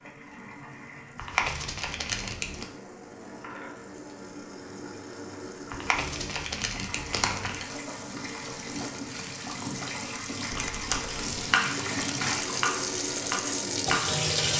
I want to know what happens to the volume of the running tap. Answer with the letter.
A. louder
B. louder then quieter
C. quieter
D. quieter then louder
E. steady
A.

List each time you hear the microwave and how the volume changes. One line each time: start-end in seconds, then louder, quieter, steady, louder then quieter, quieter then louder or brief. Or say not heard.
not heard.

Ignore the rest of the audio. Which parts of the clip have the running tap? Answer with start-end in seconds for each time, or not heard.
0.0-14.5.